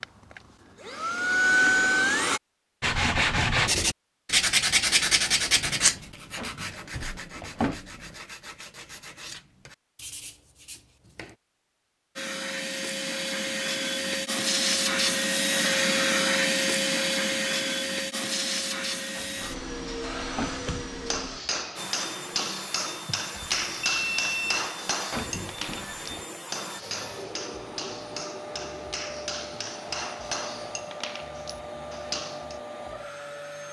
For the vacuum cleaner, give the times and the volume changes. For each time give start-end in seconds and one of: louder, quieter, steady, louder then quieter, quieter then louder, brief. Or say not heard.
0.0-2.4 brief
12.2-33.6 quieter.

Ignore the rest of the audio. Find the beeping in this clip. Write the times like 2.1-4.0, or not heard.
23.4-24.7.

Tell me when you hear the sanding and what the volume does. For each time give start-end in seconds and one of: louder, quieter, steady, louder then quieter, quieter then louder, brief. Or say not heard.
2.8-11.3 quieter.